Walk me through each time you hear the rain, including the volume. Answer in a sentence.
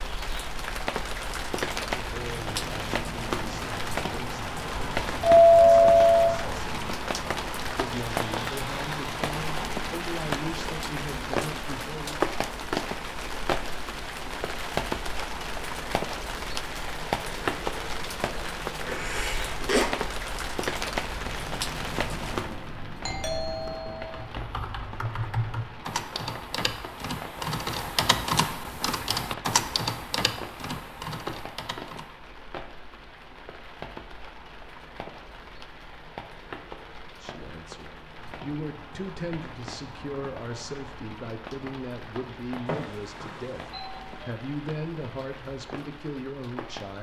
You can hear the rain from 0.0 to 46.9 s, getting quieter.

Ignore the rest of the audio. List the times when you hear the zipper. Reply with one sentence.
The zipper can be heard from 18.9 to 19.9 s.